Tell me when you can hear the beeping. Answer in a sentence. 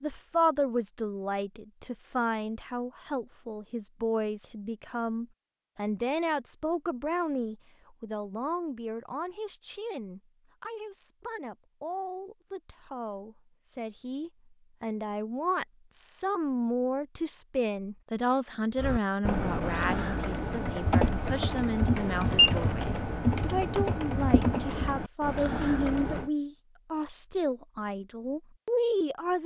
You can hear the beeping from 21.9 to 22.6 s.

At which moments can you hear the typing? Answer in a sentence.
The typing can be heard from 18.8 to 26.3 s.